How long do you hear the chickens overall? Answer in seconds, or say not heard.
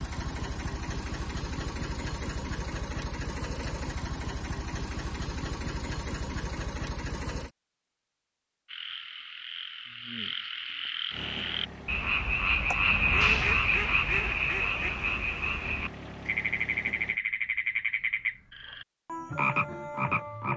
2 s.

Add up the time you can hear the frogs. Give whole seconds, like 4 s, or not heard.
12 s.